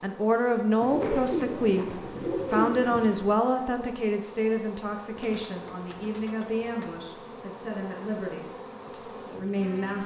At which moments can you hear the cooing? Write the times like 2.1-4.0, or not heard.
0.8-3.4, 5.2-7.0.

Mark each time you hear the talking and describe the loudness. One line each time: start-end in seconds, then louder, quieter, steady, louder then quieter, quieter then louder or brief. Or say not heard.
0.0-10.0 quieter.